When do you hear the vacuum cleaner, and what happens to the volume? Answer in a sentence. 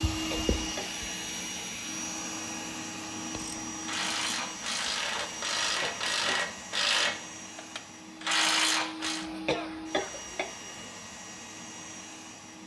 You can hear the vacuum cleaner from 0.0 to 12.6 s, getting quieter.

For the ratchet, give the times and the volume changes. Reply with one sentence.
The ratchet can be heard from 3.4 to 9.2 s, getting louder.